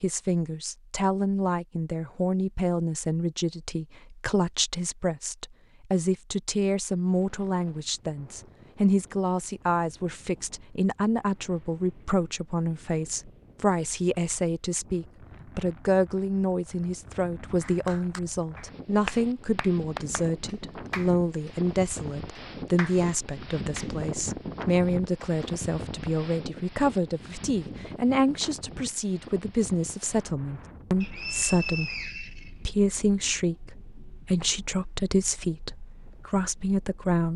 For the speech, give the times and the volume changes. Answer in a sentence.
The speech can be heard from 0.0 to 37.3 s, at a steady volume.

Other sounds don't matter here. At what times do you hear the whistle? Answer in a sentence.
The whistle can be heard from 31.0 to 32.5 s.